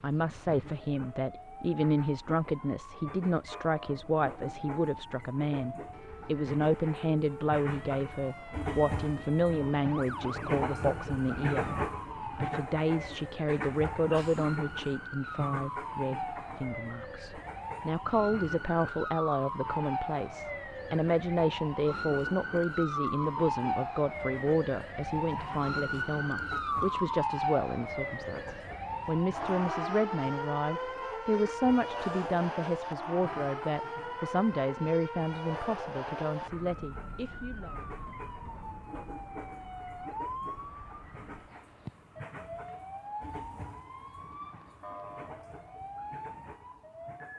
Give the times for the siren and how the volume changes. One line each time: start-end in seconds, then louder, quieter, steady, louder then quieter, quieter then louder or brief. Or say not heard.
0.0-47.3 louder then quieter.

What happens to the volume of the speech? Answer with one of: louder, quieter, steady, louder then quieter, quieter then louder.
steady.